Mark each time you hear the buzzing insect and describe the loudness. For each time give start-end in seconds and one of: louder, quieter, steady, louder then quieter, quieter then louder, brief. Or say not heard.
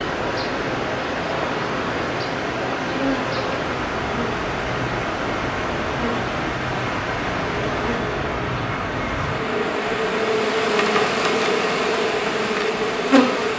0.0-13.5 louder.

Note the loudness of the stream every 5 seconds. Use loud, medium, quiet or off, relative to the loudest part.
loud, loud, medium.